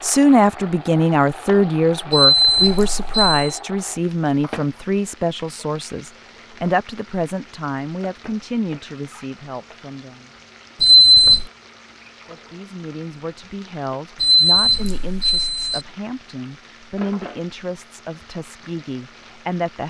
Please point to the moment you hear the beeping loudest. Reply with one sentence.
The volume of the beeping peaks at 11 seconds.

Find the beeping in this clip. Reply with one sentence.
You can hear the beeping from 2.1 to 3.5 s, from 10.8 to 11.4 s and from 14.2 to 15.8 s.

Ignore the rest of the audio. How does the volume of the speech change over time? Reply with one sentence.
The loudness of the speech goes down.